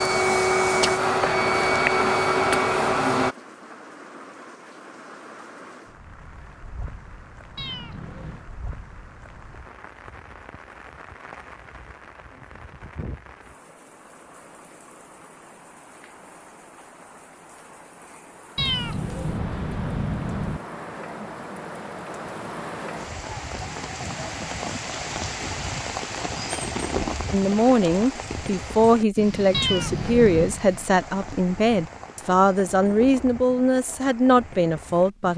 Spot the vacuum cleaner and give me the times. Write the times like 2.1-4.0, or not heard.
0.0-3.4.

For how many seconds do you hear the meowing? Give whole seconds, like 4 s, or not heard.
4 s.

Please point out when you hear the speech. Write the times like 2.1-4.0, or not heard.
27.3-35.3.